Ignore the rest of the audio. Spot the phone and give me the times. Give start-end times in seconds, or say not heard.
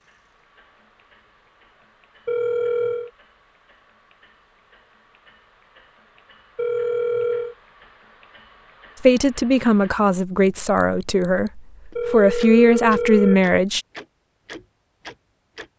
2.2-3.1, 6.5-7.5, 11.9-13.4.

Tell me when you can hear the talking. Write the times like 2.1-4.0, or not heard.
9.0-13.8.